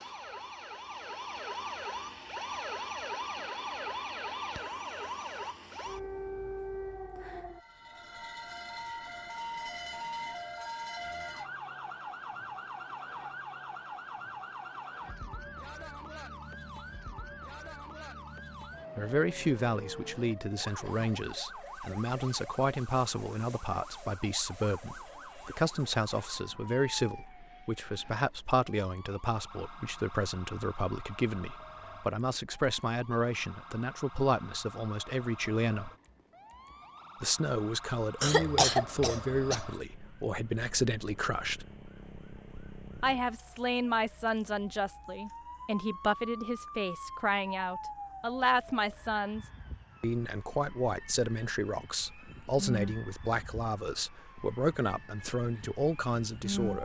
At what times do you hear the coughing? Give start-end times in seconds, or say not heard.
38.2-39.6.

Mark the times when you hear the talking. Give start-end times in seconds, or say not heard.
18.9-35.9, 37.2-41.6, 43.0-56.8.